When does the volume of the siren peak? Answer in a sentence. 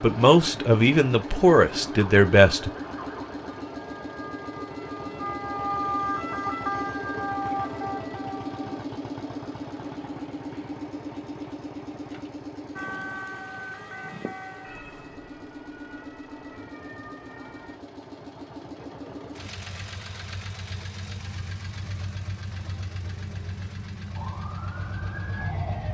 The loudest moment of the siren is at 6 seconds.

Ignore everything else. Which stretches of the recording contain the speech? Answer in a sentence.
The speech can be heard from 0.0 to 2.7 s.